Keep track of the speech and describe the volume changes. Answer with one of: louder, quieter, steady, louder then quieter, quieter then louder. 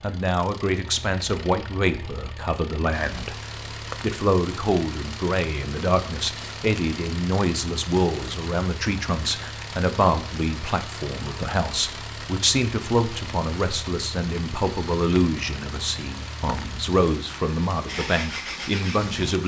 steady.